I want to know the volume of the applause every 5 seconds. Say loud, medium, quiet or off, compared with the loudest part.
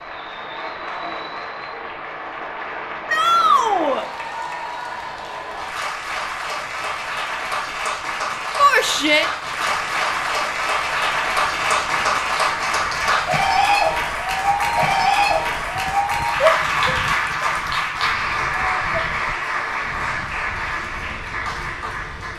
medium, medium, loud, loud, medium.